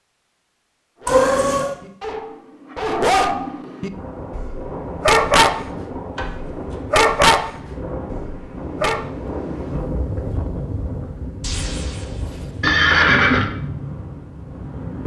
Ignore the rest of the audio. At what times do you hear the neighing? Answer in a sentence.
You can hear the neighing from 12.6 to 13.5 s.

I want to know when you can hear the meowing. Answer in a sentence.
You can hear the meowing from 1.1 to 1.7 s, from 6.2 to 6.8 s and from 11.4 to 13.3 s.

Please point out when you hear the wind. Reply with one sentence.
The wind can be heard from 3.9 to 15.0 s.